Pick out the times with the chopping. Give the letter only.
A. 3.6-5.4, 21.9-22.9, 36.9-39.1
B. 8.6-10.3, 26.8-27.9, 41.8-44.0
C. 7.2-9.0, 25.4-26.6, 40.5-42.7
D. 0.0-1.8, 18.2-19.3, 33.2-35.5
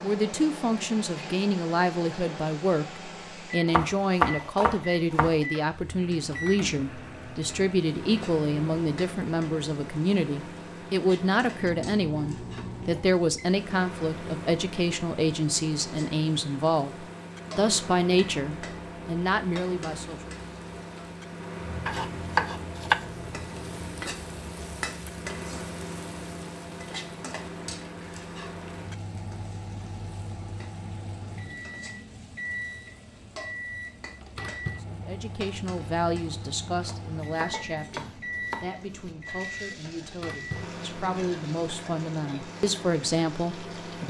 A.